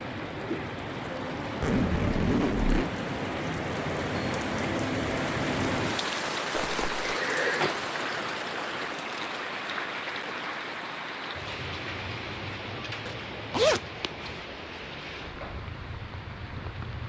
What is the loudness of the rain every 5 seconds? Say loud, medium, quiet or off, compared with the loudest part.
loud, loud, medium, medium.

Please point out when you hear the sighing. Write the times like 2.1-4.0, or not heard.
7.0-7.7.